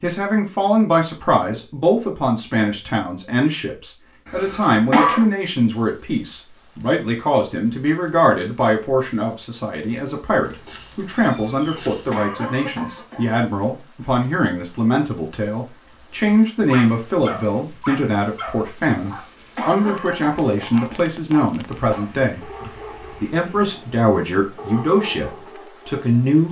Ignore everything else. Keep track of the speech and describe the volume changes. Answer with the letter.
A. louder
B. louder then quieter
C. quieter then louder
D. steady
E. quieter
D.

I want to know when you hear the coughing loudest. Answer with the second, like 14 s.
5 s.